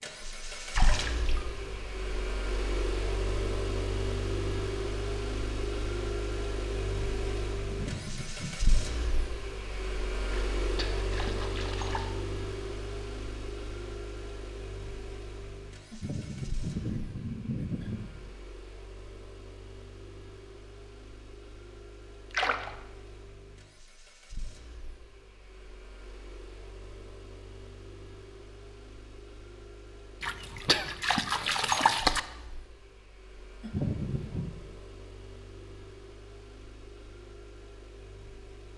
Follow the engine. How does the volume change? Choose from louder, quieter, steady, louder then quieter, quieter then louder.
quieter.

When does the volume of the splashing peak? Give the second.
32 s.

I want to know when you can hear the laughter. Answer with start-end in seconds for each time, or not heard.
7.7-8.6, 15.9-18.3, 33.6-34.5.